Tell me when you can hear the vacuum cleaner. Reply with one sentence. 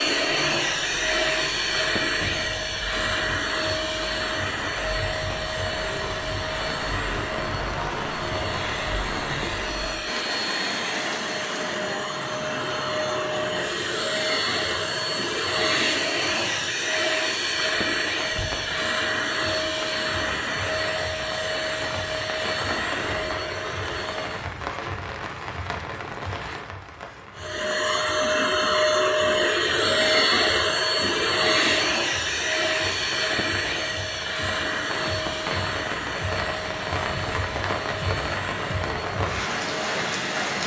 You can hear the vacuum cleaner from 0.0 to 24.6 s and from 27.4 to 40.6 s.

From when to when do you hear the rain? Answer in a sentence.
You can hear the rain from 0.0 to 40.6 s.